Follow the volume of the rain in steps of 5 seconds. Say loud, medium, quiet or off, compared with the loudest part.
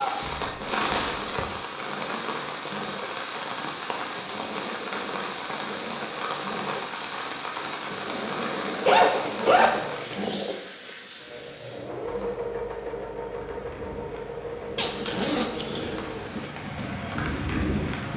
loud, loud, quiet, loud.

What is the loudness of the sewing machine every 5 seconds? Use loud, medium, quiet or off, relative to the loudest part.
medium, loud, loud, loud.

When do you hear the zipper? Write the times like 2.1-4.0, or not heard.
0.2-1.4, 8.8-10.2, 14.8-16.5.